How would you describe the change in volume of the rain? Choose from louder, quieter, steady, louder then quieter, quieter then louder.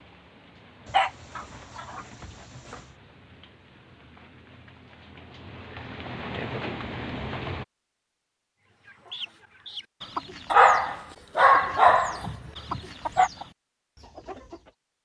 louder.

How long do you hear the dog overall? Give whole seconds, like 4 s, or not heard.
5 s.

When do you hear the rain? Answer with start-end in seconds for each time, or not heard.
0.0-7.7.